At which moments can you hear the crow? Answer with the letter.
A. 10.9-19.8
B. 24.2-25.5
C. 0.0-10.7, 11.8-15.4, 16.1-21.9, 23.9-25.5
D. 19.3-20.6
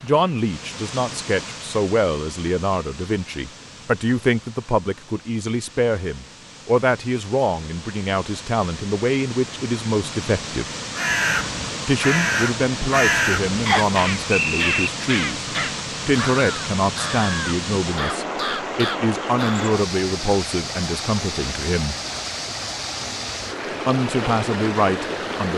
A.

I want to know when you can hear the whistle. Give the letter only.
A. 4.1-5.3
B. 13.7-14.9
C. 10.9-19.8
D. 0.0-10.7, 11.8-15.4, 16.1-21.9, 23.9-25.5
B.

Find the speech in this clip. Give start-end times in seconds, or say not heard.
0.0-10.7, 11.8-15.4, 16.1-21.9, 23.9-25.5.